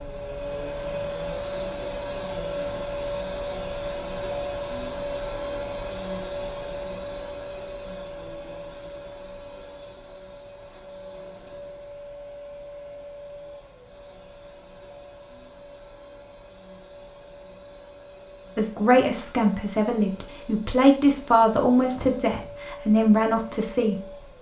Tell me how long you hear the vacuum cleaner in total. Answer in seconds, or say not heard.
24 s.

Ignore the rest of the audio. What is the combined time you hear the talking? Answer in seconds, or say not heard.
6 s.